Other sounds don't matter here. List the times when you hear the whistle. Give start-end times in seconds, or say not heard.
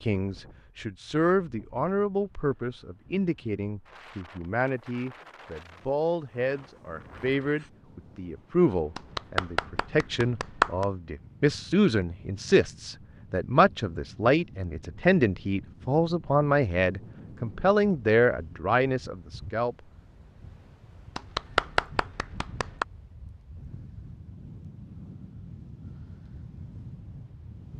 not heard.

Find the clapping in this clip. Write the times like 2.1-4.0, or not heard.
8.9-10.8, 21.1-22.9.